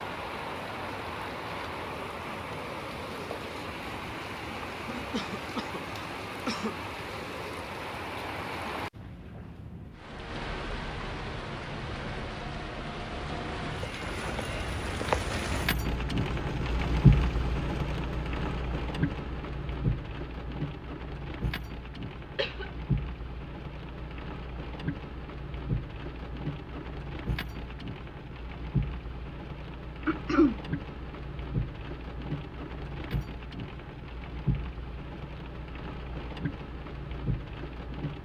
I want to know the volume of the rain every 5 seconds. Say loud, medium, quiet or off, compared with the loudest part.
medium, medium, medium, loud, medium, medium, medium, medium.